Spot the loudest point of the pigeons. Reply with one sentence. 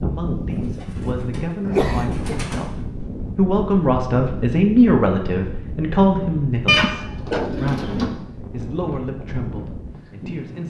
The loudest moment of the pigeons is at 7 seconds.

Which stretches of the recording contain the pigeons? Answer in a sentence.
You can hear the pigeons from 0.5 to 2.7 s and from 6.7 to 8.2 s.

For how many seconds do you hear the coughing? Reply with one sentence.
You can hear the coughing for 2 seconds altogether.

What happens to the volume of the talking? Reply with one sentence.
The loudness of the talking goes up, then down.